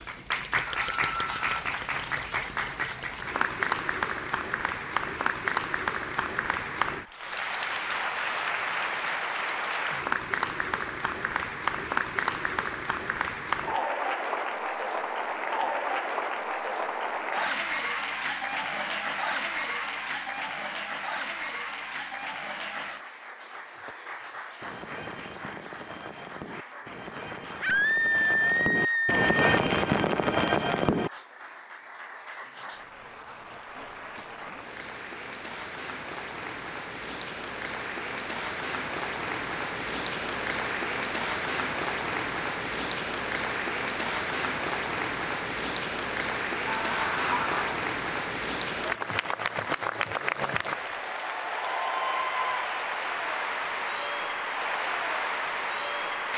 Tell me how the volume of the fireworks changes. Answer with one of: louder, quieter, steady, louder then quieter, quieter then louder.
louder.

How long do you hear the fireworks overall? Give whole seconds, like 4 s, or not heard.
7 s.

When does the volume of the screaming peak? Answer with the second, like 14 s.
28 s.